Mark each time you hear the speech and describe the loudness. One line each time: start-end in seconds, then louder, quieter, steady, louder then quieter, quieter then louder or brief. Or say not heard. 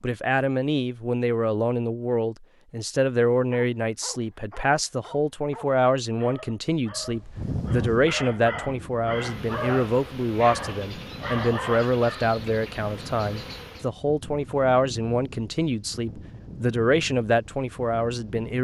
0.0-18.6 steady.